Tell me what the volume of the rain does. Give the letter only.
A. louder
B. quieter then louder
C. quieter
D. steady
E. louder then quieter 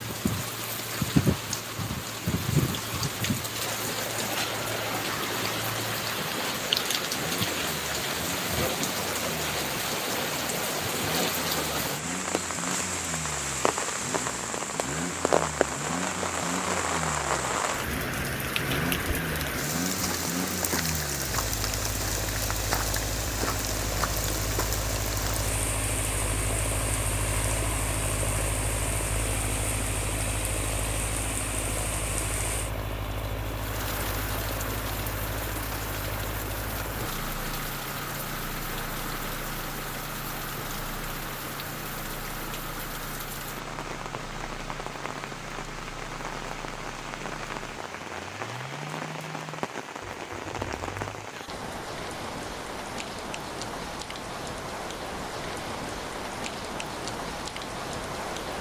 C.